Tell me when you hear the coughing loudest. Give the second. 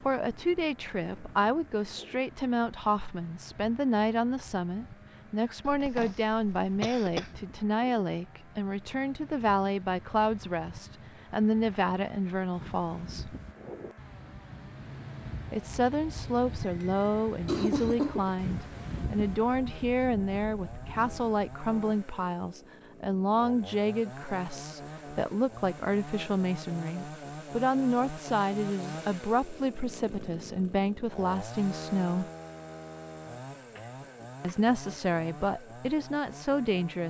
18 s.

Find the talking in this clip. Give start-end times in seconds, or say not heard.
0.0-13.3, 15.5-32.3, 34.4-37.0.